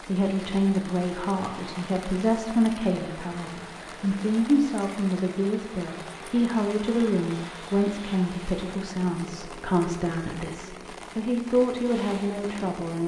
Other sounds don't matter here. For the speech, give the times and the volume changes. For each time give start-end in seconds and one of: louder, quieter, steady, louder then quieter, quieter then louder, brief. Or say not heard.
0.1-13.0 steady.